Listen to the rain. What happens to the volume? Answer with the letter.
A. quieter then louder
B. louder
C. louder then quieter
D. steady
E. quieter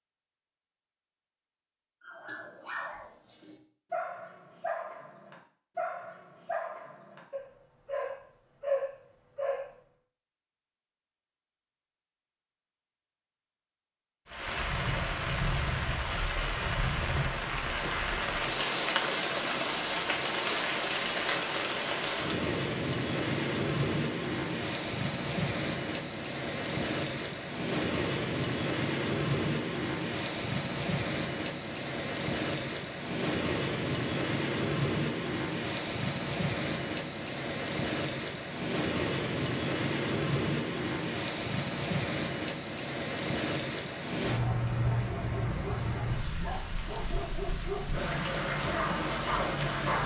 D.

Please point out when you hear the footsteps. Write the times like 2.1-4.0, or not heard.
not heard.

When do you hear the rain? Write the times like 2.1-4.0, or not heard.
14.2-50.0.